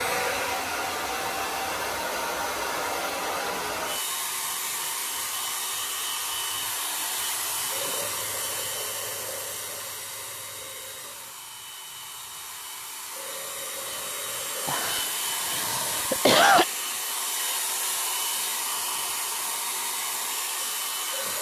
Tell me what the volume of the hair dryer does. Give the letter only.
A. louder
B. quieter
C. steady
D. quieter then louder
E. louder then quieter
D.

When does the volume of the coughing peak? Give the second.
16 s.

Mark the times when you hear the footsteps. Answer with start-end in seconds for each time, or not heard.
not heard.